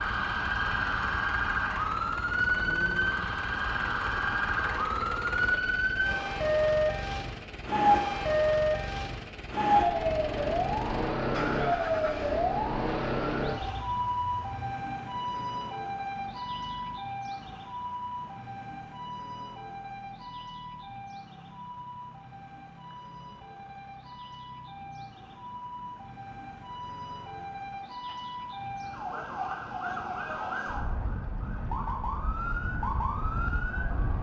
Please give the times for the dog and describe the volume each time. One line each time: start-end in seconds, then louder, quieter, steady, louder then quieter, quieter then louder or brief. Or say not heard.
not heard.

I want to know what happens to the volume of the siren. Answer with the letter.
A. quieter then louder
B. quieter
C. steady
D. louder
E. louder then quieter
A.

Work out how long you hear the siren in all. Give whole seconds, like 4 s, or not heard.
34 s.